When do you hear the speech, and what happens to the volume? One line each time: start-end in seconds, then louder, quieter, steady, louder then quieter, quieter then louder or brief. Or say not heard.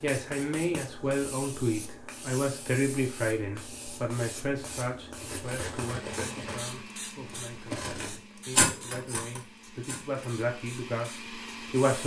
0.0-12.0 quieter then louder.